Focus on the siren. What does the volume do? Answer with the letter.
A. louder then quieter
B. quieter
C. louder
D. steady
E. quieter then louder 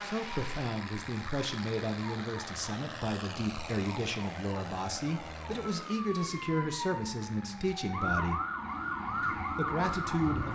C.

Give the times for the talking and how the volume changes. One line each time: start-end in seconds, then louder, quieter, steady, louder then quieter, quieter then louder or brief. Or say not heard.
0.0-8.4 steady
9.5-10.4 brief.